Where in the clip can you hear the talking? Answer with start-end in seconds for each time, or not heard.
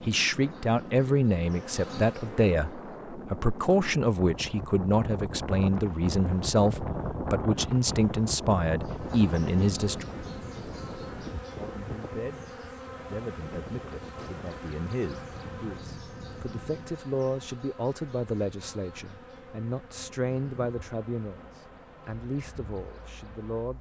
0.1-10.1, 11.6-23.7.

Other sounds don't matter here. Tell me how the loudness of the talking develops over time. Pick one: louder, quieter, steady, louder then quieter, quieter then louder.
quieter.